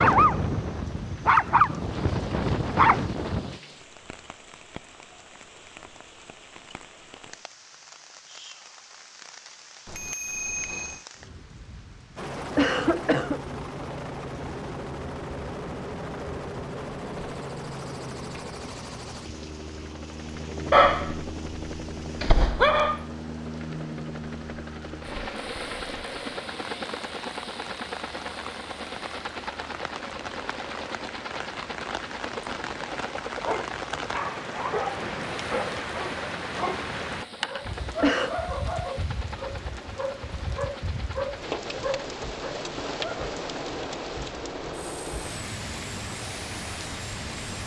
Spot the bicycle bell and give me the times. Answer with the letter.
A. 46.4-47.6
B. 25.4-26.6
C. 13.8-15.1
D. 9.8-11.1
D.